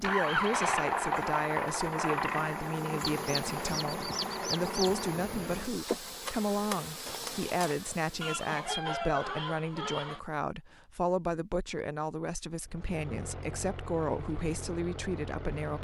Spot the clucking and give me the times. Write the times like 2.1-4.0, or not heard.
3.2-5.0, 8.2-10.2.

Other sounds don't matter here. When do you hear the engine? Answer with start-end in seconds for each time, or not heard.
0.0-5.5, 12.7-15.7.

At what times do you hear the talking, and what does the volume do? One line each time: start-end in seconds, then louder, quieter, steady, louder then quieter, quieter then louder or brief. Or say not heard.
0.0-15.7 steady.